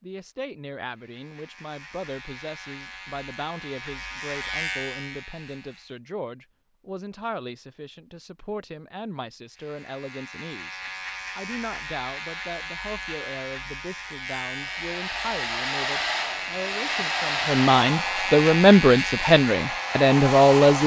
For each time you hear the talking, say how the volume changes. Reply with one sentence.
The talking can be heard from 0.0 to 20.8 s, getting louder.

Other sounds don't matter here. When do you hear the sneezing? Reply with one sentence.
The sneezing can't be heard in this clip.